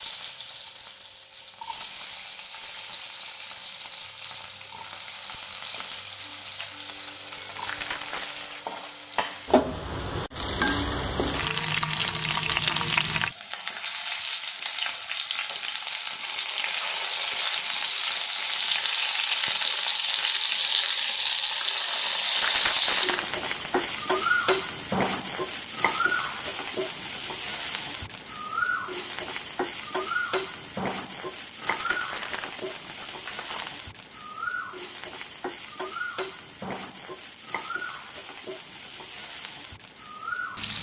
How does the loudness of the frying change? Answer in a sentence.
The loudness of the frying goes up, then down.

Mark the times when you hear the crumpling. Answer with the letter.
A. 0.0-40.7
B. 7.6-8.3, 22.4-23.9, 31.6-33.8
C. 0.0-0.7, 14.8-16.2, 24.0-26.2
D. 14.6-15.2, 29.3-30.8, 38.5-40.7
B.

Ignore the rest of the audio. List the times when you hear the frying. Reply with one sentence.
You can hear the frying from 0.0 to 40.7 s.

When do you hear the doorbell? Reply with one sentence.
The doorbell can't be heard in this clip.